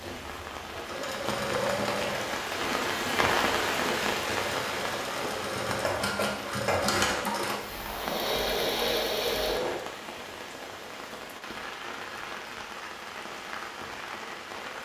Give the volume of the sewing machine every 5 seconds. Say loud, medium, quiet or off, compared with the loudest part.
medium, loud, off.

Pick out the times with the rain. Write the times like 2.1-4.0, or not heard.
0.0-14.8.